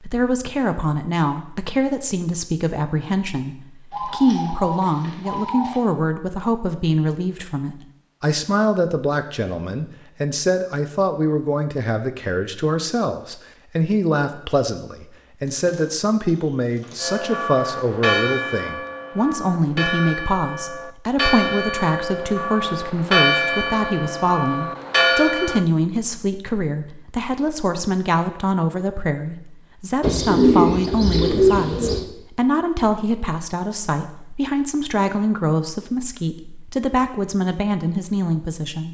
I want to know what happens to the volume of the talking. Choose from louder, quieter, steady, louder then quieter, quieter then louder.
steady.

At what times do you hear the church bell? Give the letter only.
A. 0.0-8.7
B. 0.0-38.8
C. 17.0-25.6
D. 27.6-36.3
C.